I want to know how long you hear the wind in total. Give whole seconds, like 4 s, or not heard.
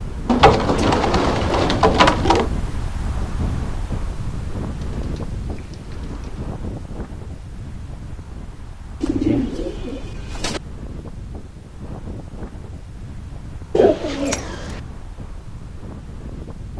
17 s.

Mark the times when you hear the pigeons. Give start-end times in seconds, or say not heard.
0.2-2.5, 4.8-6.5, 9.0-10.6, 13.8-14.8.